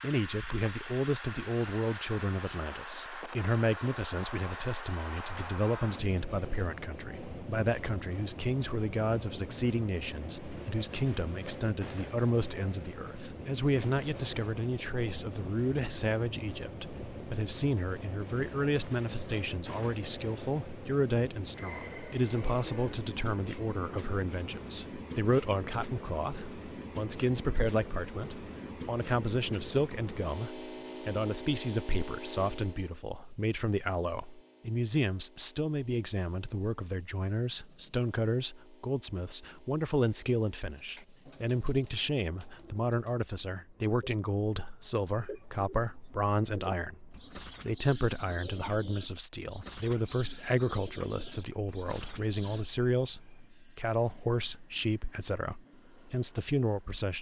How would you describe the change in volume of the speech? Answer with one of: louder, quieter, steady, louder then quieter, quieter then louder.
steady.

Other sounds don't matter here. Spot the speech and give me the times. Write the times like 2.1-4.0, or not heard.
0.0-57.1.